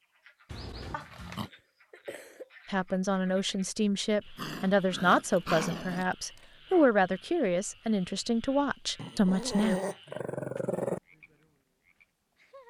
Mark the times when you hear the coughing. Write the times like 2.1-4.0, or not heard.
1.4-2.5.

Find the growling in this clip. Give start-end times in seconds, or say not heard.
0.5-1.5, 4.3-6.0, 8.9-11.0.